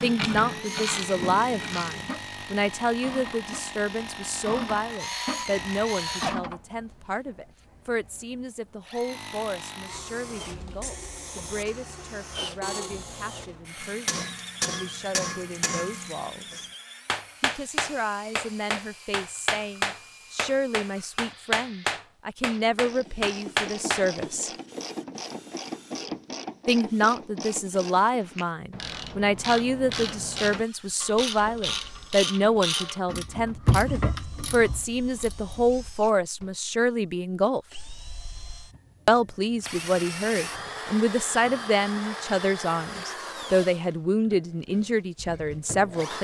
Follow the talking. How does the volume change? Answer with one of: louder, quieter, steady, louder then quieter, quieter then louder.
quieter then louder.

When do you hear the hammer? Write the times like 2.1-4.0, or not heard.
13.8-24.1.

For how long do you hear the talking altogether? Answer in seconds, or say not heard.
42 s.